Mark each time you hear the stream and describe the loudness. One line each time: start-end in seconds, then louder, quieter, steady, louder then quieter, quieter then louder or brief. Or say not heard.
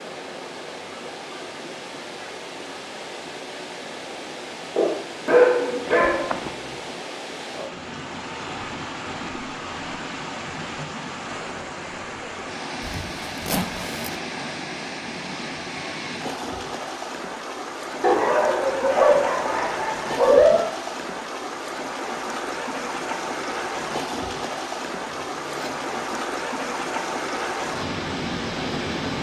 0.0-29.1 louder.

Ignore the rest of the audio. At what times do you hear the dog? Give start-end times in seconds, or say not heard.
4.8-6.3, 18.0-20.6.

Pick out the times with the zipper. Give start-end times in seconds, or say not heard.
5.8-6.5, 12.8-14.2, 25.1-26.1.